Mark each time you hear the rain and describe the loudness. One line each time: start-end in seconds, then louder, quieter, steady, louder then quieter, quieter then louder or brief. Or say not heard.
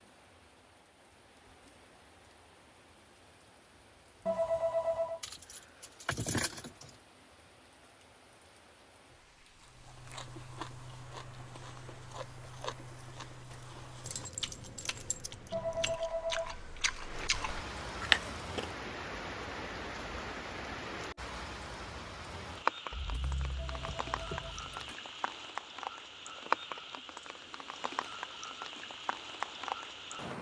0.0-30.3 louder.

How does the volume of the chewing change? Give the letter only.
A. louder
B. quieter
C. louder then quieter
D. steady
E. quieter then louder
A.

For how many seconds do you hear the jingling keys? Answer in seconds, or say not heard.
6 s.